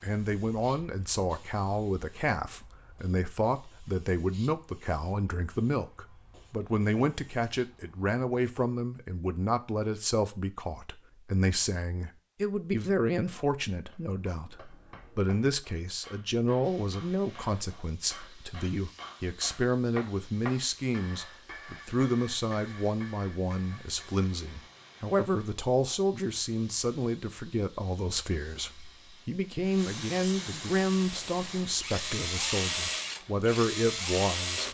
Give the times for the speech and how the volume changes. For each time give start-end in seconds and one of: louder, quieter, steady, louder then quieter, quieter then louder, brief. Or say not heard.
0.0-34.6 steady.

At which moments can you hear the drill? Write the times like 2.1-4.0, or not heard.
30.8-34.6.